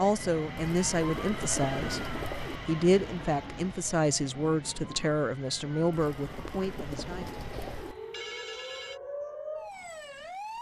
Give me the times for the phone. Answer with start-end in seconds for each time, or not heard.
7.5-9.0.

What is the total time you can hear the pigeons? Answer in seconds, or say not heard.
4 s.